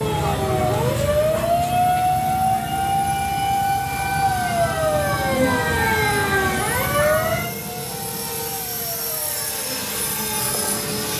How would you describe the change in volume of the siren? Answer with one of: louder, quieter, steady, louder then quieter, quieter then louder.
quieter.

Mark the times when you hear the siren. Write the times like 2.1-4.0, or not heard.
0.0-10.9.